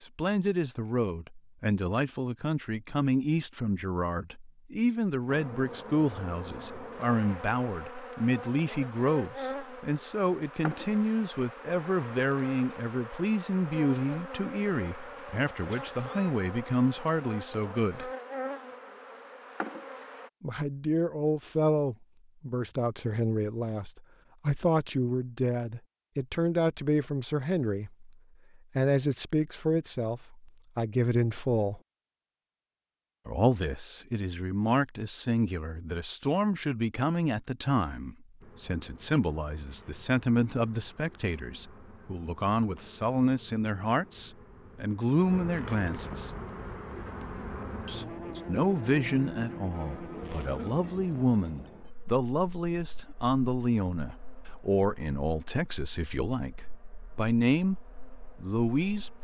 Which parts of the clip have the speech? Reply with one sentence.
You can hear the speech from 0.0 to 18.1 s, from 20.4 to 28.1 s, from 28.8 to 31.8 s, from 33.2 to 46.3 s, from 47.9 to 56.5 s and from 57.1 to 59.1 s.